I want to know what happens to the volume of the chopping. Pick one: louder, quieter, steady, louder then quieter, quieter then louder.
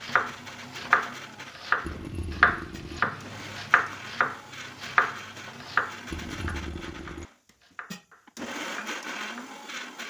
quieter.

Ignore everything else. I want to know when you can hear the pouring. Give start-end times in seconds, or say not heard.
1.8-3.0, 6.1-7.3.